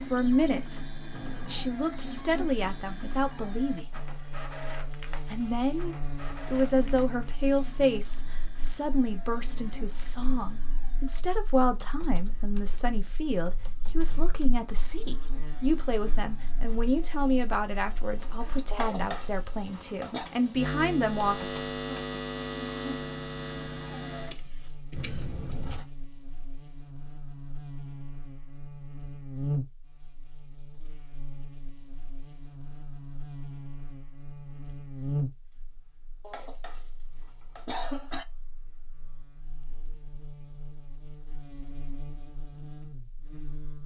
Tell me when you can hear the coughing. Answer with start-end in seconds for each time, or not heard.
18.7-20.3, 36.2-38.2.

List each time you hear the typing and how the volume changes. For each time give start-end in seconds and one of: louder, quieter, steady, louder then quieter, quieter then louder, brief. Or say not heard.
not heard.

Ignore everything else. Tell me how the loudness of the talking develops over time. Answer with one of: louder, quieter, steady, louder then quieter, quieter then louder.
steady.